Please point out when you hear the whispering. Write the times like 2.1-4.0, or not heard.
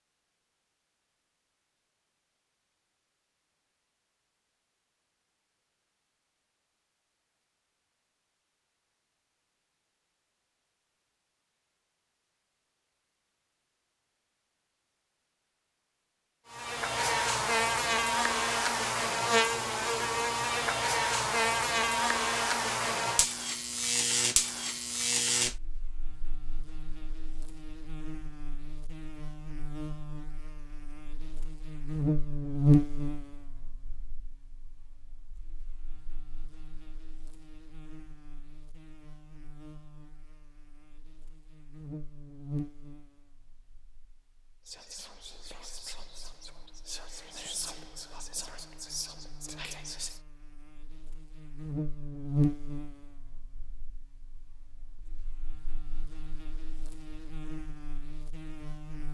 44.6-50.2.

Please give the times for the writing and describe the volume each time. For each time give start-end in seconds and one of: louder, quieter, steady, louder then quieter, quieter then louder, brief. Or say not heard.
not heard.